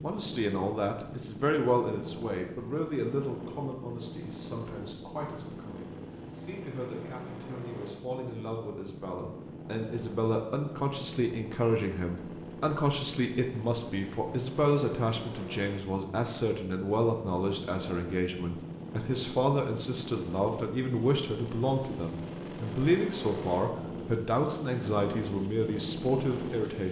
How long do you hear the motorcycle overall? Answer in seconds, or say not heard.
27 s.